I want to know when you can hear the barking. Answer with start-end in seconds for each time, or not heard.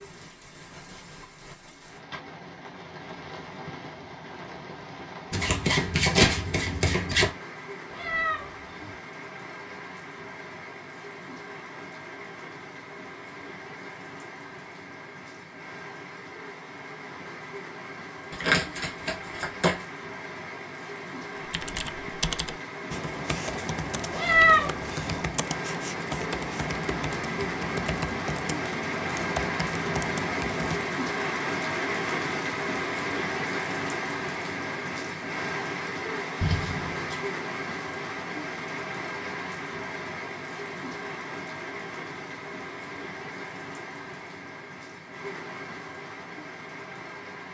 not heard.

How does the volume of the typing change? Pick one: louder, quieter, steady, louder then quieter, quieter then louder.
steady.